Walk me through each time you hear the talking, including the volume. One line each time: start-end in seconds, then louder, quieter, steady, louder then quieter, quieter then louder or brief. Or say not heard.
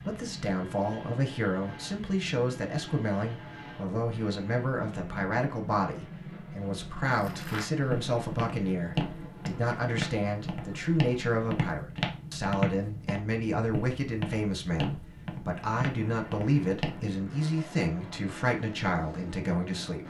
0.0-20.0 steady.